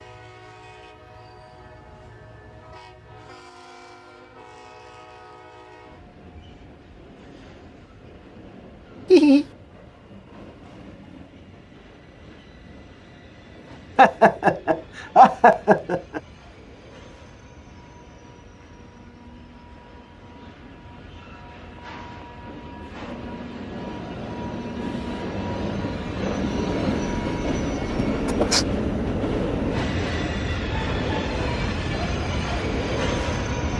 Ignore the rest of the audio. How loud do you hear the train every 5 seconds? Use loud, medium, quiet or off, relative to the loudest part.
quiet, quiet, quiet, quiet, medium, loud, loud.